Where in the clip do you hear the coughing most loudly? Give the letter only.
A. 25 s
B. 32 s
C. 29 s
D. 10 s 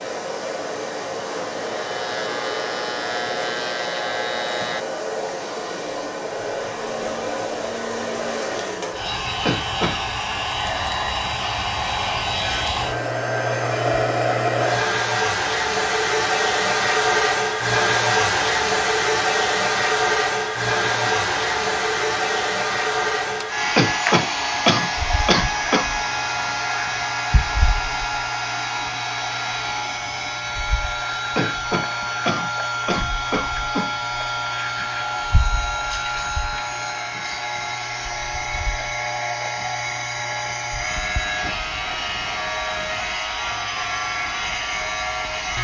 A.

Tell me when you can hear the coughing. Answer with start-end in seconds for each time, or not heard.
9.4-9.9, 23.8-25.9, 31.4-33.9.